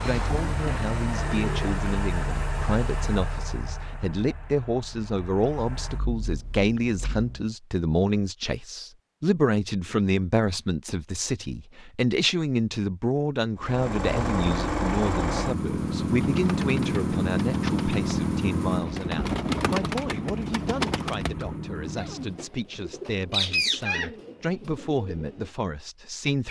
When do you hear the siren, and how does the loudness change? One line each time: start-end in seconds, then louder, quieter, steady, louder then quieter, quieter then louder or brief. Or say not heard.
not heard.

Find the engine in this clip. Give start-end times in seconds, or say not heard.
0.0-7.5, 13.6-22.4.